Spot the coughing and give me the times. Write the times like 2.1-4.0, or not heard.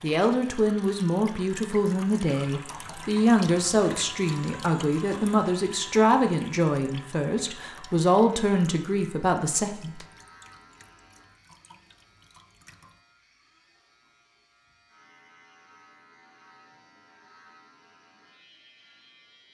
not heard.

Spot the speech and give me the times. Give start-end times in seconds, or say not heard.
0.0-10.1.